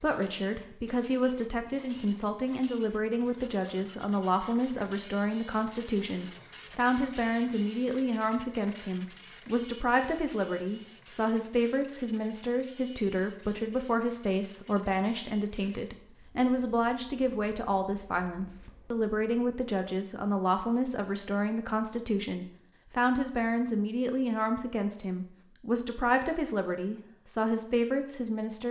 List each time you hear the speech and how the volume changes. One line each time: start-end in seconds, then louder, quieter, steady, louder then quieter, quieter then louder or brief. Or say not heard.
0.0-28.6 steady.